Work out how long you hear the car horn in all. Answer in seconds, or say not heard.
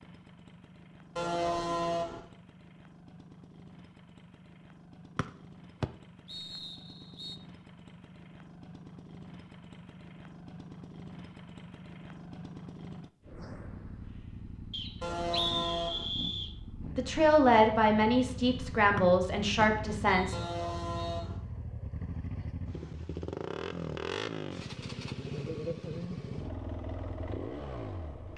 3 s.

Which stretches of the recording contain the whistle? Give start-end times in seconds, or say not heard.
5.2-7.3, 14.7-16.6, 18.9-21.2.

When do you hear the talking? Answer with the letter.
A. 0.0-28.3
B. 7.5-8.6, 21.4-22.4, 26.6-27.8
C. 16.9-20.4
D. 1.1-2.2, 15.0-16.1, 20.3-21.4
C.